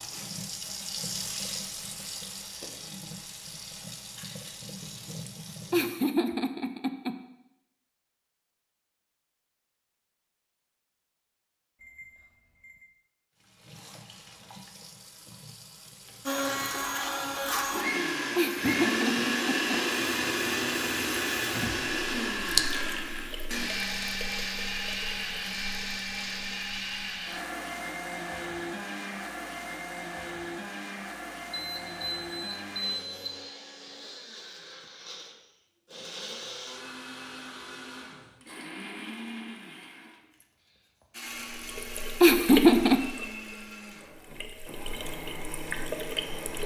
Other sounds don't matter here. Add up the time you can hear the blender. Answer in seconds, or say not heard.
30 s.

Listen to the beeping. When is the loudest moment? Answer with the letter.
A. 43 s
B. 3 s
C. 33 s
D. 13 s
C.